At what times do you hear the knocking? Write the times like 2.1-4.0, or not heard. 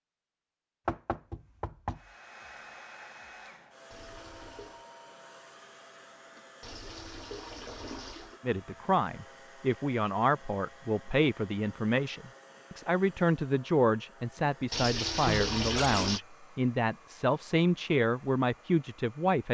0.8-2.0, 15.2-16.1.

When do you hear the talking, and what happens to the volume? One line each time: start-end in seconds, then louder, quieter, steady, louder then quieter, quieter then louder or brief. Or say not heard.
8.4-19.4 steady.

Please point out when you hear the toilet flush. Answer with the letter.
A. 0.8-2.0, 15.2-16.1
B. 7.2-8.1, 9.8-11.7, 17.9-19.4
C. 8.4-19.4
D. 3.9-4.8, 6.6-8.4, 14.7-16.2
D.